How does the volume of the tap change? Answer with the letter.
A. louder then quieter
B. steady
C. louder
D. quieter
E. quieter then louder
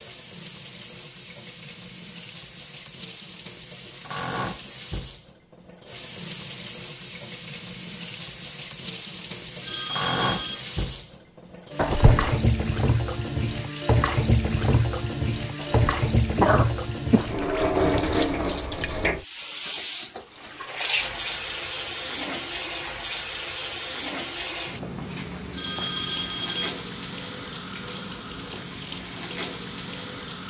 A.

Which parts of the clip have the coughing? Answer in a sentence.
You can hear the coughing from 11.8 to 12.4 s and from 15.6 to 17.3 s.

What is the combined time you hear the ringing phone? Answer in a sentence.
You can hear the ringing phone for 2 seconds altogether.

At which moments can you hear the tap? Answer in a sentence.
The tap can be heard from 0.0 to 30.4 s.